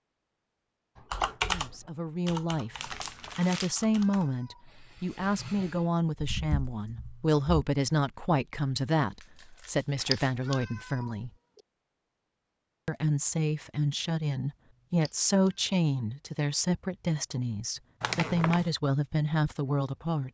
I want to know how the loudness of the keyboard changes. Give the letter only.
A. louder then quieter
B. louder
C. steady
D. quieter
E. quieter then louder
E.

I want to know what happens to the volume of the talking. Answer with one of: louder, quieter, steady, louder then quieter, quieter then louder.
steady.